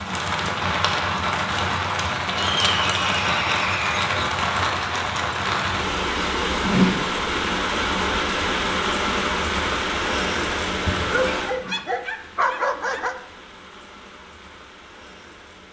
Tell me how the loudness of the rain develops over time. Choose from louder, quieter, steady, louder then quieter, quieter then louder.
quieter.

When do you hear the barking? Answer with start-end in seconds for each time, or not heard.
11.0-13.2.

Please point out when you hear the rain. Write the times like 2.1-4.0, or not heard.
0.0-15.6.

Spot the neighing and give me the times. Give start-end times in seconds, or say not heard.
2.6-4.0.